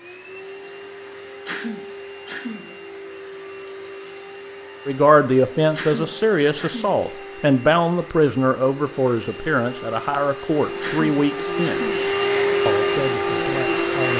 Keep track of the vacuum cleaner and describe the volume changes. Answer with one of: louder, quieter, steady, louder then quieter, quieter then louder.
louder.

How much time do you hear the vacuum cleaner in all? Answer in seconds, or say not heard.
14 s.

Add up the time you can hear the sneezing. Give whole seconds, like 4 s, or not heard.
4 s.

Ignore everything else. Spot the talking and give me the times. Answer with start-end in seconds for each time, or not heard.
4.8-11.9, 12.7-14.1.